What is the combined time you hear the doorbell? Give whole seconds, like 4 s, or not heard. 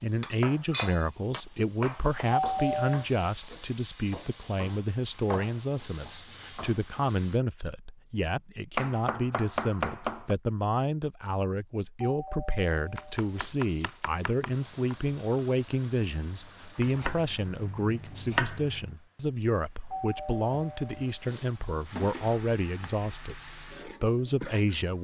4 s.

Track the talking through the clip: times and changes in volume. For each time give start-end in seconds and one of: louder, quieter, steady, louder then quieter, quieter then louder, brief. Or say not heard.
0.0-25.0 steady.